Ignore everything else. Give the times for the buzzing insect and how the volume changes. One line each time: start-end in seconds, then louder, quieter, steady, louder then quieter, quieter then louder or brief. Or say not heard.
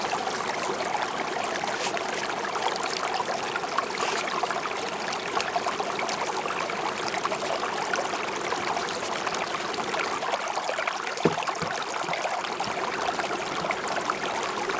0.0-14.7 steady.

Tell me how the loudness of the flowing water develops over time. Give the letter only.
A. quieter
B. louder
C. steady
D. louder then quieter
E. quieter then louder
C.